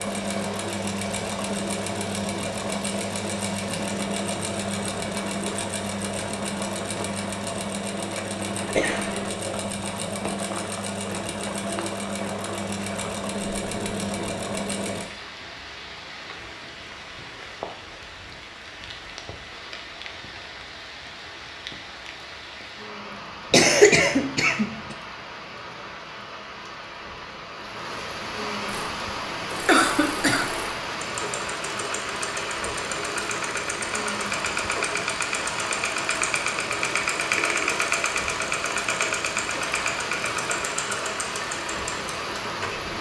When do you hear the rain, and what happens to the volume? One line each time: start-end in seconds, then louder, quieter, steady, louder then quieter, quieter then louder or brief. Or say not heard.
0.0-42.9 louder.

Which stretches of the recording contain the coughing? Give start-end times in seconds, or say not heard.
8.7-9.4, 23.5-24.9, 29.6-30.6.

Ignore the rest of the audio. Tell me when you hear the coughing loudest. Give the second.
24 s.